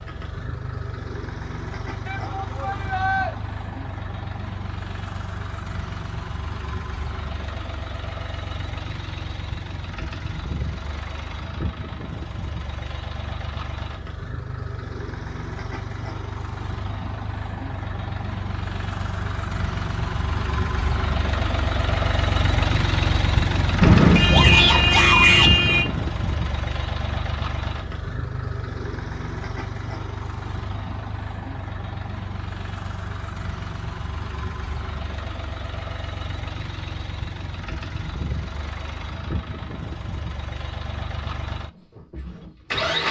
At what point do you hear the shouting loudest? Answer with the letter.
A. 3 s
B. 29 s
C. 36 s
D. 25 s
D.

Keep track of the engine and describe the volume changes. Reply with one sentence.
The volume of the engine goes up, then down.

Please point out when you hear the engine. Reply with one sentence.
The engine can be heard from 0.0 to 43.0 s.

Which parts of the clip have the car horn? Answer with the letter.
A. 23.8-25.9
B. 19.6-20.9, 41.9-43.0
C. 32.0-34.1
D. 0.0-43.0
A.